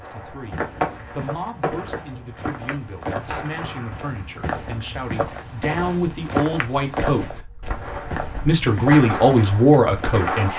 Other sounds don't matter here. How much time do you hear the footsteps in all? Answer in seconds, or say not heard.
10 s.